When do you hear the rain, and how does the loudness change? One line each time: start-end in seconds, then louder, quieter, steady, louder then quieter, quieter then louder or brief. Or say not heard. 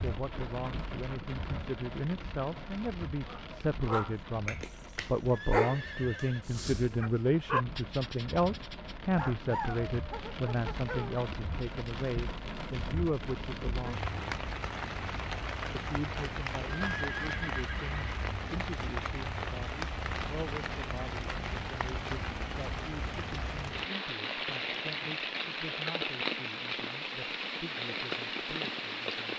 0.0-29.3 louder.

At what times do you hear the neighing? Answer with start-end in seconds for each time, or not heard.
4.6-6.5, 16.8-18.2.